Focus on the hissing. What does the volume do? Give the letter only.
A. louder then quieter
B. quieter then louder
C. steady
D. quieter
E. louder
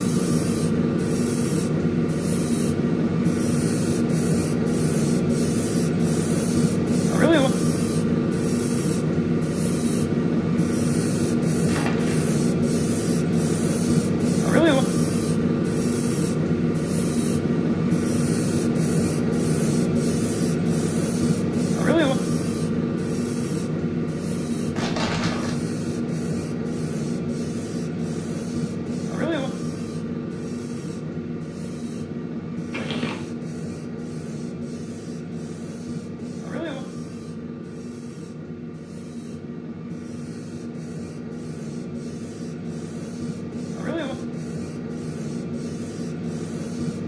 D.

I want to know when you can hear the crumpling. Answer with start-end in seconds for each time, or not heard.
11.7-12.3, 24.8-25.6, 32.7-33.3.